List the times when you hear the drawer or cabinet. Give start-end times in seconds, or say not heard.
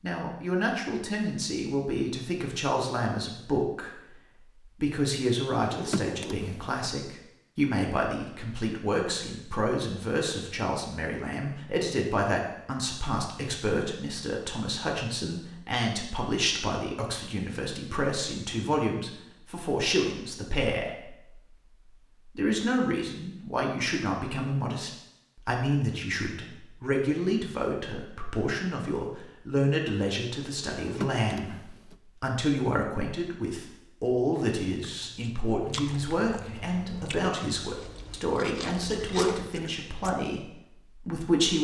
5.5-6.9, 30.6-31.9.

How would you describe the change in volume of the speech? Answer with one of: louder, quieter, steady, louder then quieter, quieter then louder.
steady.